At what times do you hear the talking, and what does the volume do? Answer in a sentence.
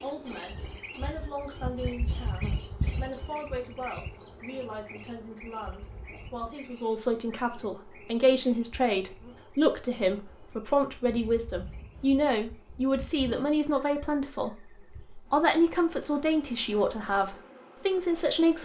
The talking can be heard from 0.0 to 18.5 s, getting louder.